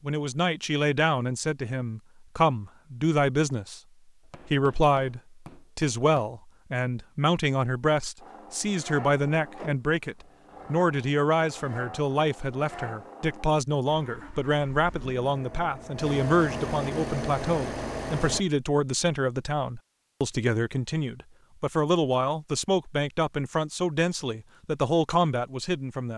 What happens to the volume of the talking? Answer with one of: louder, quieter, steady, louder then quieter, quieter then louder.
steady.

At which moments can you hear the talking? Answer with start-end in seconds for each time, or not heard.
0.0-3.8, 4.5-26.1.